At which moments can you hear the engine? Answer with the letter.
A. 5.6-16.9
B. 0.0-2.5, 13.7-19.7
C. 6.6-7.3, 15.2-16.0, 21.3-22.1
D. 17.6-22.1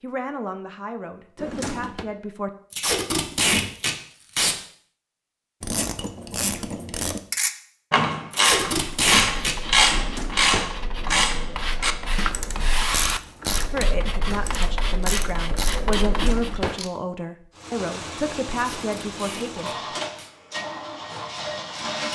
D.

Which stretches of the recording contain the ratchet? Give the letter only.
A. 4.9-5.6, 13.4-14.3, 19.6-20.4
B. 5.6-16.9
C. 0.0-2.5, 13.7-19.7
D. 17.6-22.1
B.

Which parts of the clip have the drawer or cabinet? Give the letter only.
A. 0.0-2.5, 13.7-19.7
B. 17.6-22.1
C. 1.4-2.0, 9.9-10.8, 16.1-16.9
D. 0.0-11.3
C.